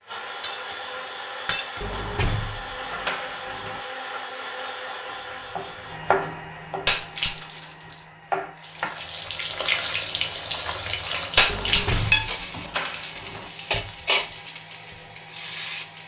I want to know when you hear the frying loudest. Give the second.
12 s.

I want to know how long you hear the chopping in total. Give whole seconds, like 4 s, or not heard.
4 s.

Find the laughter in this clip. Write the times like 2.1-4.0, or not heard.
not heard.